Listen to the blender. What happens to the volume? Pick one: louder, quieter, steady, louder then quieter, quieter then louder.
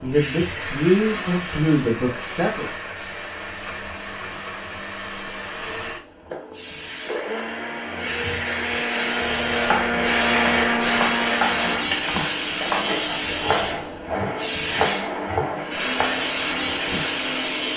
louder then quieter.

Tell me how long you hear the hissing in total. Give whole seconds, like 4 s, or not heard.
18 s.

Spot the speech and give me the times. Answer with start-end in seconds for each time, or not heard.
0.0-2.7.